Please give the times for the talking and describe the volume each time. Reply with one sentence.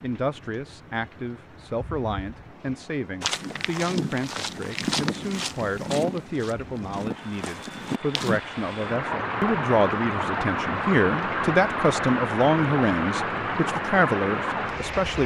You can hear the talking from 0.0 to 15.2 s, getting louder.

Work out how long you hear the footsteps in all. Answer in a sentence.
You can hear the footsteps for 5 seconds altogether.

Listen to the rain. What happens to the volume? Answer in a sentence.
The volume of the rain goes up.